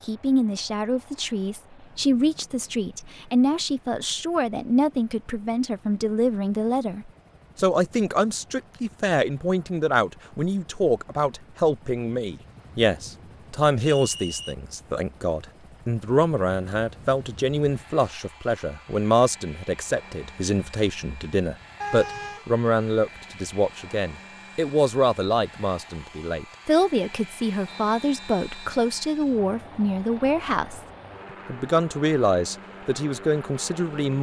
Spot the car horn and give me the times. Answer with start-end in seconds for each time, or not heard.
21.8-22.4.